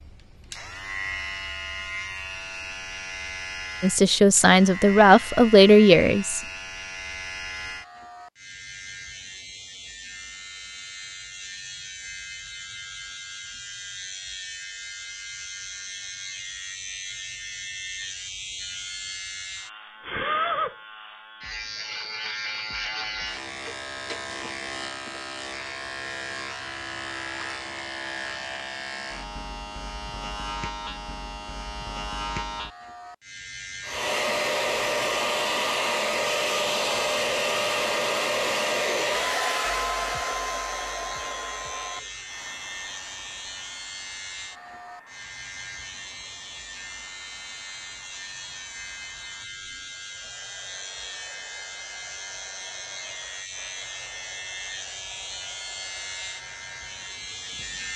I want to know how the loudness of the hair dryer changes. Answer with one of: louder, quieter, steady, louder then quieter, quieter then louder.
quieter.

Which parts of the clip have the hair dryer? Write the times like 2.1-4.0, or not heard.
33.9-57.9.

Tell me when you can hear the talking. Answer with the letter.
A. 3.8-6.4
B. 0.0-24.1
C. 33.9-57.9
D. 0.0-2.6
A.